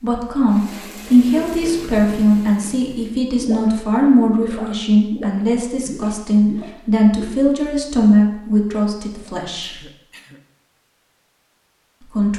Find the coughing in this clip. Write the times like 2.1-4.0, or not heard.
9.6-10.4.